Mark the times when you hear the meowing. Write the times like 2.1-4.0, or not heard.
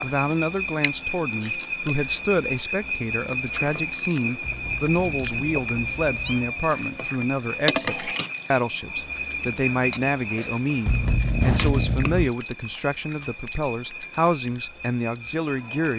4.4-6.5, 10.8-12.3.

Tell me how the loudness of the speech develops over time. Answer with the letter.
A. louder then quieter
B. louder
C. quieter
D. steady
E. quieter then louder
D.